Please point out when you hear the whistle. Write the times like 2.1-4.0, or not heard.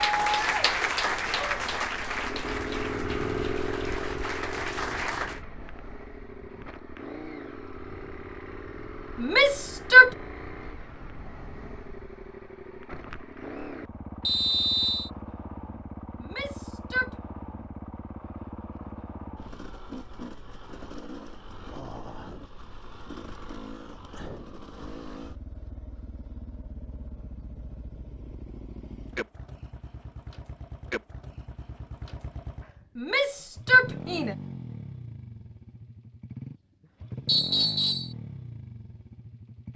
14.2-15.1, 37.2-38.1.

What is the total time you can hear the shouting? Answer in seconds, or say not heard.
3 s.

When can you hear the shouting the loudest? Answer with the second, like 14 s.
10 s.